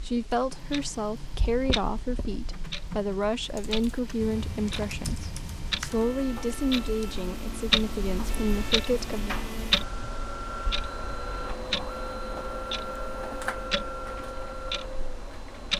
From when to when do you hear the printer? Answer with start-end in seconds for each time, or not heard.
0.1-15.7.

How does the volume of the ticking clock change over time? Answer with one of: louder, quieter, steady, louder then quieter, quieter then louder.
louder then quieter.